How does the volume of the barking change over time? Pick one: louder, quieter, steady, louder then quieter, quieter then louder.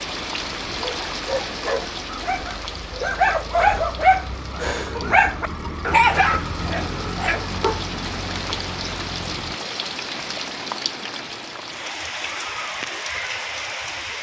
louder then quieter.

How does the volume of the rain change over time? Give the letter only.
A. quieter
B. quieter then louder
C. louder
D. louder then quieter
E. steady
B.